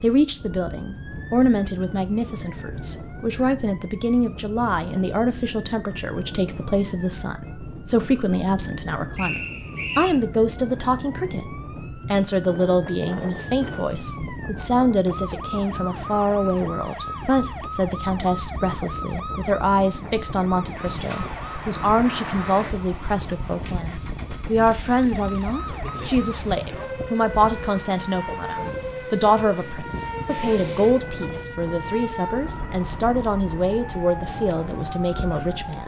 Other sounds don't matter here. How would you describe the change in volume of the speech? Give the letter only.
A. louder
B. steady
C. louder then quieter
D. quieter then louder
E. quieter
B.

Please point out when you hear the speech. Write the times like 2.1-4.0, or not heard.
0.0-35.8.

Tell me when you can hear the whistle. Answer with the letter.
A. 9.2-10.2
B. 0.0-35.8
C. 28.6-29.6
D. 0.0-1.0
A.